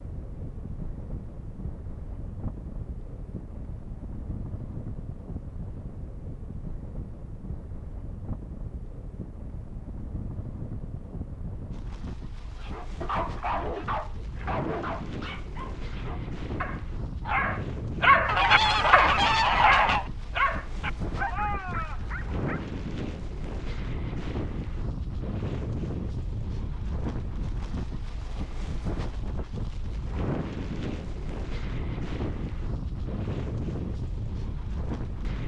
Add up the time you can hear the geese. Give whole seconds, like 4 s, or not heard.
2 s.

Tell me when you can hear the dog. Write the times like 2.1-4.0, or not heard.
12.6-22.6.